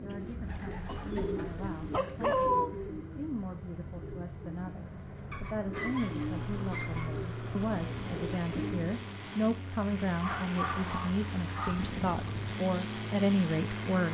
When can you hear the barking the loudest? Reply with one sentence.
The loudest moment of the barking is at 2 seconds.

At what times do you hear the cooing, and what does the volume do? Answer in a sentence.
The cooing can be heard from 0.0 to 9.0 s, getting quieter then louder.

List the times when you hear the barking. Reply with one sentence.
The barking can be heard from 0.8 to 2.7 s, from 5.3 to 7.2 s and from 10.1 to 12.3 s.